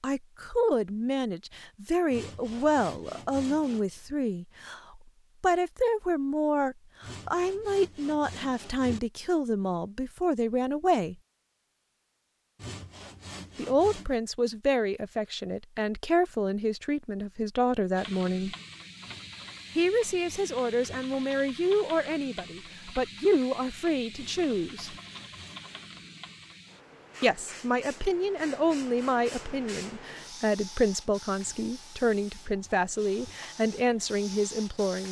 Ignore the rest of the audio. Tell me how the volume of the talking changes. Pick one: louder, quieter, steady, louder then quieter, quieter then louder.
steady.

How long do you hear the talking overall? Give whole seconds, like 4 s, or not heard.
29 s.